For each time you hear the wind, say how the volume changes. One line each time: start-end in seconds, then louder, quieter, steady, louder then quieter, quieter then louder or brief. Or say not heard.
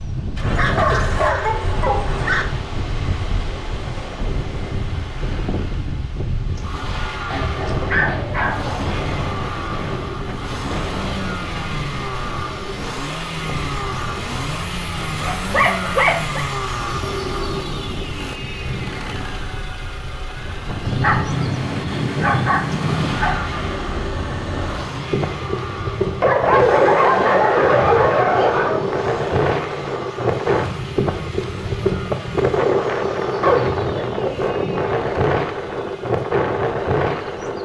0.0-37.5 louder.